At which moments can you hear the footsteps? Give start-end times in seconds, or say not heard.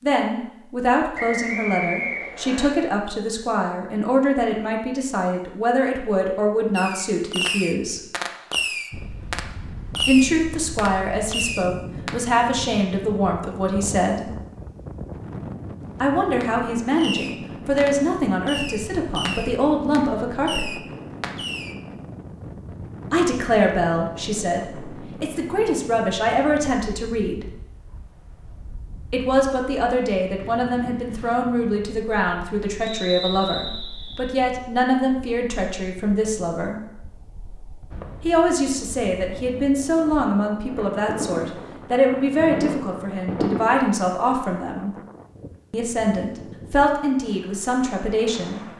not heard.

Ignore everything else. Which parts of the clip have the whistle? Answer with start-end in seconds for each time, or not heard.
1.1-2.7, 32.8-34.3.